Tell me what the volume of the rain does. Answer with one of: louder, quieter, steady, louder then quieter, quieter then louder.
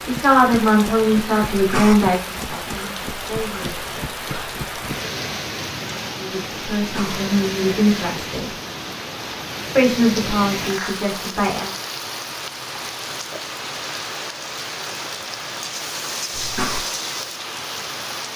steady.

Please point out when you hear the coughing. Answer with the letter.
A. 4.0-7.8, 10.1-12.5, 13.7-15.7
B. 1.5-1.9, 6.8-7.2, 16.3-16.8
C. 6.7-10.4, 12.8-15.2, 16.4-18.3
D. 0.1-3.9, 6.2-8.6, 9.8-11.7
B.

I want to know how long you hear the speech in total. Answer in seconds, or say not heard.
8 s.